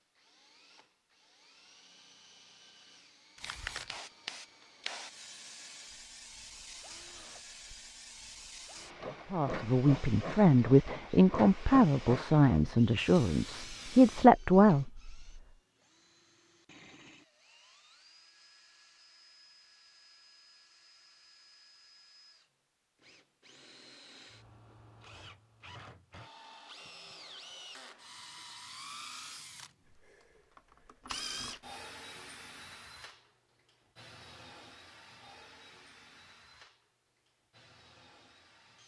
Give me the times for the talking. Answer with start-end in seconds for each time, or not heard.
9.3-15.4.